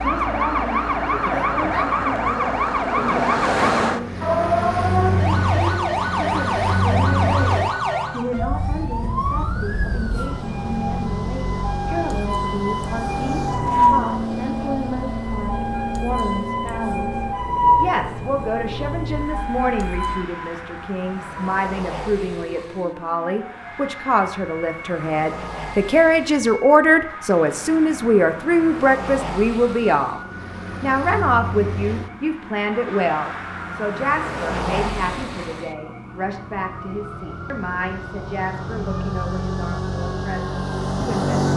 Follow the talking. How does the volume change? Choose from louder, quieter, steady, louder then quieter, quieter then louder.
louder then quieter.